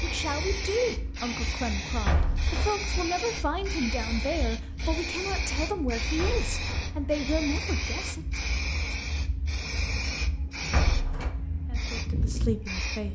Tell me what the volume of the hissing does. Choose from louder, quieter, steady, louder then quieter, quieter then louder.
steady.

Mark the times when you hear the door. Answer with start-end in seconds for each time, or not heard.
2.0-2.7, 6.2-7.2, 10.7-11.3.